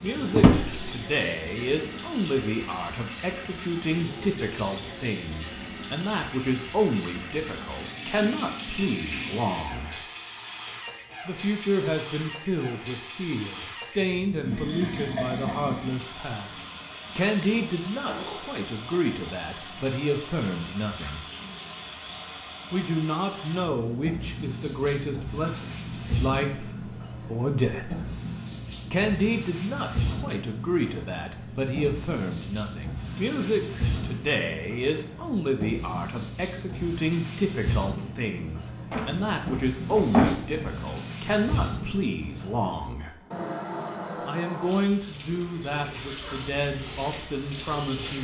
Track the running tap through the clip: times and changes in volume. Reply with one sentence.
The running tap can be heard from 0.0 to 48.1 s, at a steady volume.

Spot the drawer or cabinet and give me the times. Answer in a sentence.
The drawer or cabinet can be heard from 0.3 to 0.9 s, from 17.4 to 18.9 s and from 38.9 to 40.7 s.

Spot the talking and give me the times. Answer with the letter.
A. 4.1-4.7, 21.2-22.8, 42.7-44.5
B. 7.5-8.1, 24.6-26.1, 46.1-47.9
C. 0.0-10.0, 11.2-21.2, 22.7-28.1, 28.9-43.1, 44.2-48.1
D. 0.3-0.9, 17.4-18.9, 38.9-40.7
C.